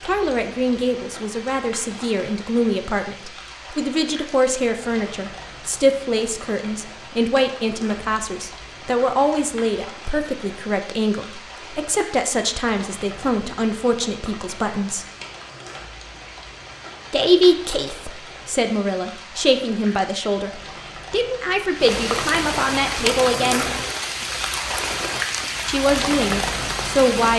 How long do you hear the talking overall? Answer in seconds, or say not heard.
23 s.